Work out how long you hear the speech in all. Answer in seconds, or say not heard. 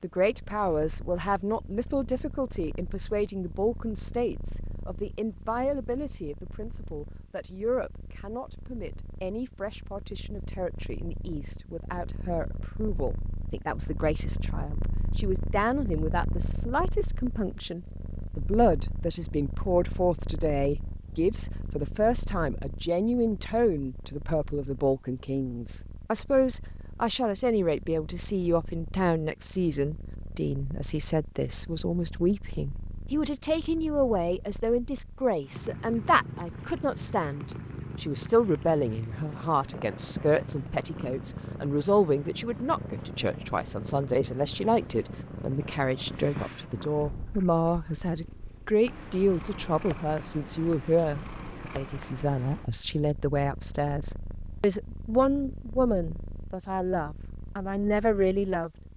59 s.